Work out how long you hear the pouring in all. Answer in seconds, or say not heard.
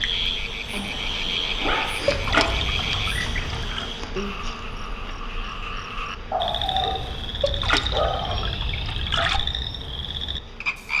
4 s.